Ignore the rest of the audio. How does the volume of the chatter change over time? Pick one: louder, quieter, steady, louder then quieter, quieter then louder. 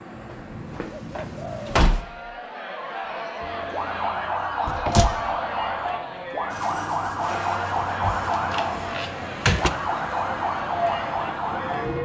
steady.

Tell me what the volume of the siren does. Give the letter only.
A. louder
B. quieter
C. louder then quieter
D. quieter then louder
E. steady
E.